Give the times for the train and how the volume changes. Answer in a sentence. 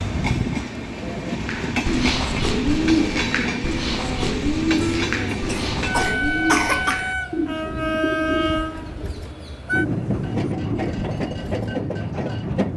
The train can be heard from 0.0 to 12.7 s, at a steady volume.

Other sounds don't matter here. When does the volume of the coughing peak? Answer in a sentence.
The volume of the coughing peaks at 7 seconds.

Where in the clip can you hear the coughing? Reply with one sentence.
The coughing can be heard from 5.5 to 7.0 s.